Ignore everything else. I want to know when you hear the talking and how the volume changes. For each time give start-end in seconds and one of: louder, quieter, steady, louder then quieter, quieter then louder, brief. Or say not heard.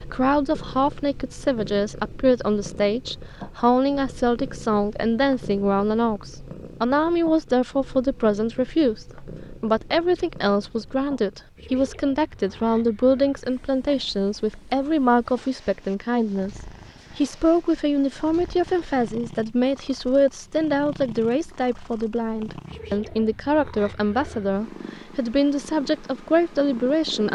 0.0-27.2 steady.